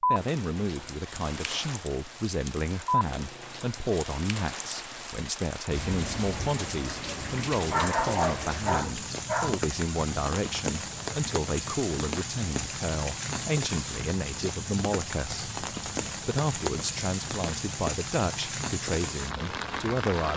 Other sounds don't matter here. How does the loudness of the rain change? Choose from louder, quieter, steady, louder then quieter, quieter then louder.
steady.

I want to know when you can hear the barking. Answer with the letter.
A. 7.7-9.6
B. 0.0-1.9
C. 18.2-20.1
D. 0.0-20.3
A.